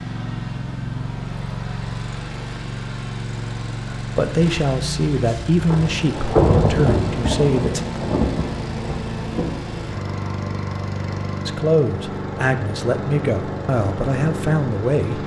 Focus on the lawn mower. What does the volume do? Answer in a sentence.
The loudness of the lawn mower stays about the same.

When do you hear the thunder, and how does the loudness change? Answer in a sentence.
The thunder can be heard from 5.7 to 9.8 s, getting quieter.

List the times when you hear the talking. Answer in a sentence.
You can hear the talking from 4.0 to 7.8 s and from 11.4 to 15.2 s.